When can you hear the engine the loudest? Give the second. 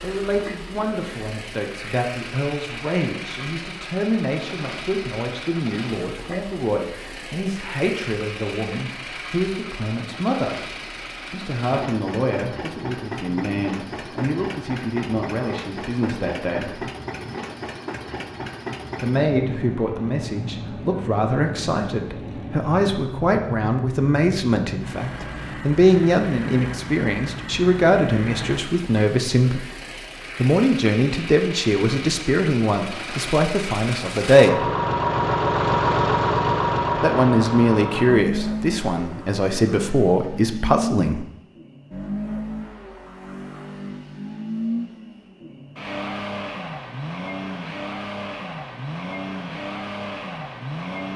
36 s.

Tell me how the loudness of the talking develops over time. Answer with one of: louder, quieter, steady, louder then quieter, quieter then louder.
louder.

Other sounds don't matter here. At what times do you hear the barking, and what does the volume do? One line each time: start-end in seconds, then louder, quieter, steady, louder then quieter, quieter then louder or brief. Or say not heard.
not heard.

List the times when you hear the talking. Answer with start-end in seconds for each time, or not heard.
0.0-10.6, 11.3-16.9, 19.0-29.6, 30.4-34.7, 37.0-41.2.